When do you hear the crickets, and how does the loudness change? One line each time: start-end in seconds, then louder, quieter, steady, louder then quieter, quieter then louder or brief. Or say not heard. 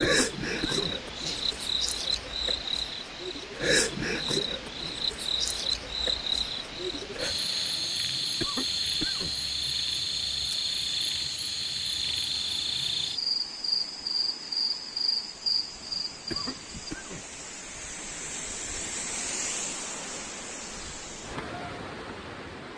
0.0-16.8 steady.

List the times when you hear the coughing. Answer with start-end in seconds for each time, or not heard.
0.0-1.6, 8.4-9.3, 16.3-17.4.